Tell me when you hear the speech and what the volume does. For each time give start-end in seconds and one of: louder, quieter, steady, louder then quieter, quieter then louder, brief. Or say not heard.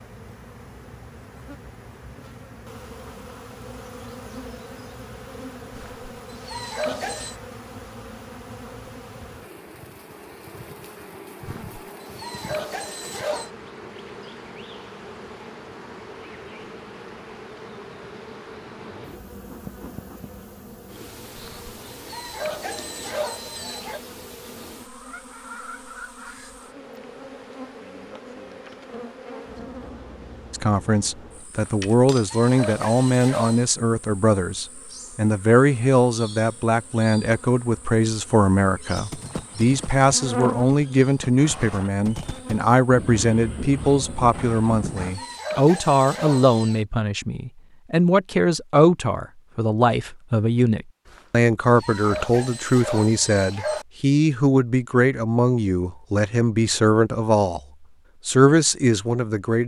30.5-57.6 steady
58.2-59.6 brief.